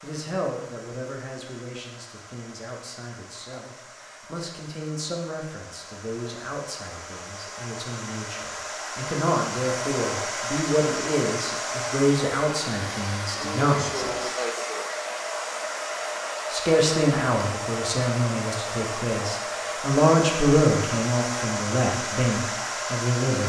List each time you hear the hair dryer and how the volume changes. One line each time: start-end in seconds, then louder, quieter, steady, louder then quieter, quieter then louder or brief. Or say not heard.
0.0-23.4 louder.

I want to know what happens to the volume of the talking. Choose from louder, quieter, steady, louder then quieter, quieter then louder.
louder.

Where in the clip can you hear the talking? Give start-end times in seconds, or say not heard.
0.0-14.3, 16.5-23.4.